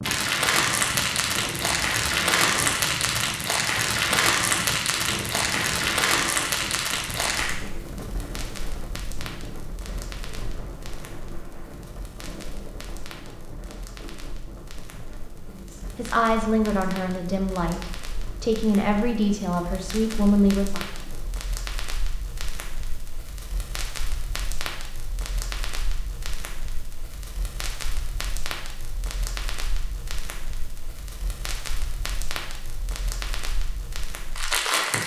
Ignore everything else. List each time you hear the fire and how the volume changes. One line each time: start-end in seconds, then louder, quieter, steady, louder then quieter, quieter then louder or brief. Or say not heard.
0.0-35.0 quieter then louder.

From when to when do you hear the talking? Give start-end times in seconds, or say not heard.
15.5-20.8.